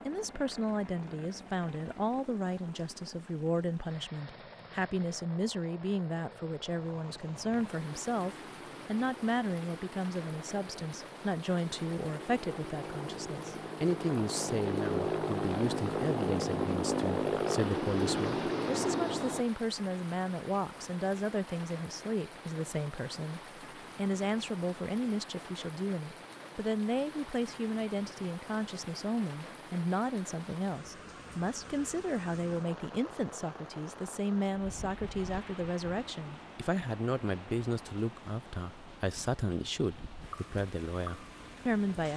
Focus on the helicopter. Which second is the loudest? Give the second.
17 s.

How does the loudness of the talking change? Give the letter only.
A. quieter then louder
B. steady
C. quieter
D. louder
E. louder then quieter
B.